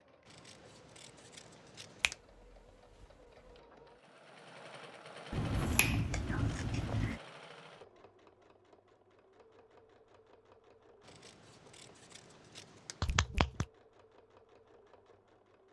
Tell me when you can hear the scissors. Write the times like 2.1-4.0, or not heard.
0.2-2.2, 6.1-7.2, 11.0-13.2.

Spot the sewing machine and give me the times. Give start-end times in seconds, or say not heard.
0.0-15.6.